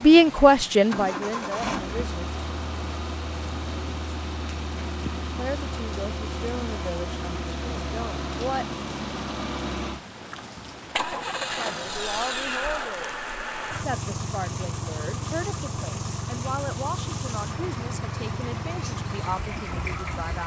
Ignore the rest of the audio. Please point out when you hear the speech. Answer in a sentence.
You can hear the speech from 0.0 to 2.2 s, from 5.3 to 8.8 s and from 11.5 to 20.4 s.